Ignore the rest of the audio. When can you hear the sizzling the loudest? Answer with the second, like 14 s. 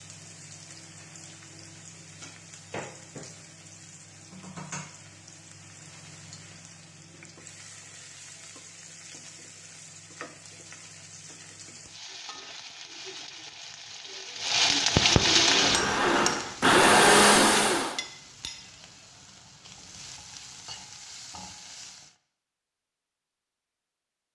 15 s.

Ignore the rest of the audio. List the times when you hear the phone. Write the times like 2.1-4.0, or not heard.
not heard.